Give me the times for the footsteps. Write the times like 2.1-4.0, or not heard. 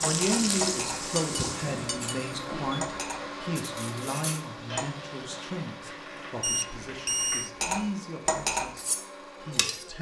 not heard.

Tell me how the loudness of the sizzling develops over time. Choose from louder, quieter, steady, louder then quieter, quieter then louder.
quieter.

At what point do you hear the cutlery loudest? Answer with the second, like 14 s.
8 s.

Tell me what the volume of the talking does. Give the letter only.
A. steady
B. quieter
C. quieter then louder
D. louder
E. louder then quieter
C.